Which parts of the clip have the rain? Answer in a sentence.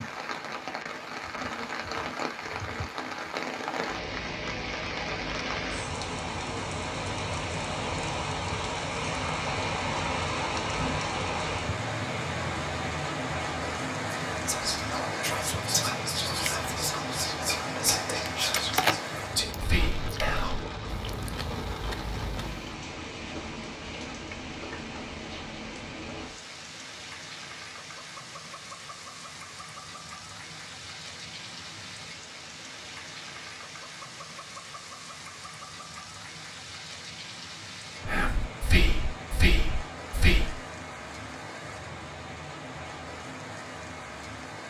You can hear the rain from 0.0 to 44.6 s.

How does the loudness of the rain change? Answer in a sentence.
The volume of the rain goes down.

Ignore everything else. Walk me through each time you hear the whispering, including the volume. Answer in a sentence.
The whispering can be heard from 14.1 to 20.7 s, at a steady volume; and briefly from 38.0 to 40.6 s.